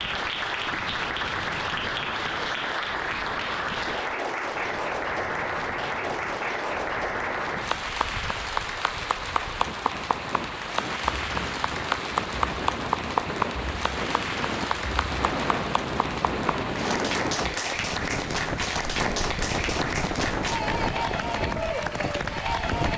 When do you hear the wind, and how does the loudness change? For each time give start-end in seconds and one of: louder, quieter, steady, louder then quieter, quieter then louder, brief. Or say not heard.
0.0-22.9 louder.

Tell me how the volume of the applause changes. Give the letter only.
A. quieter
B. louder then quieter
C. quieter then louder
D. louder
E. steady
E.